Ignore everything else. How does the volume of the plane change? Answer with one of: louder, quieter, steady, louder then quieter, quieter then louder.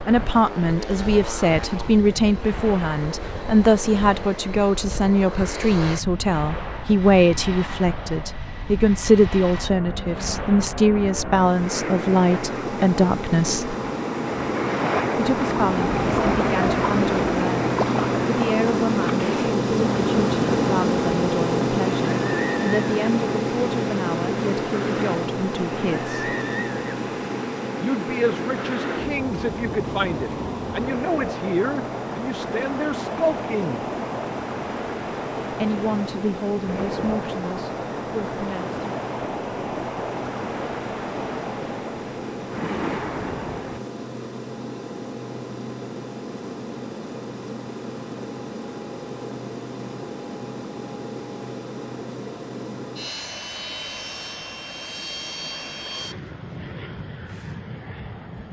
louder then quieter.